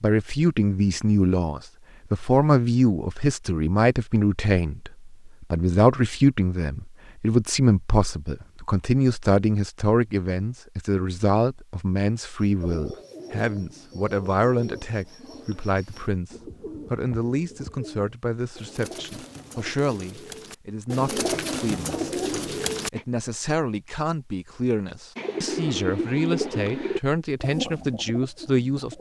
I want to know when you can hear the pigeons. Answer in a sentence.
You can hear the pigeons from 12.4 to 23.1 s and from 25.1 to 28.9 s.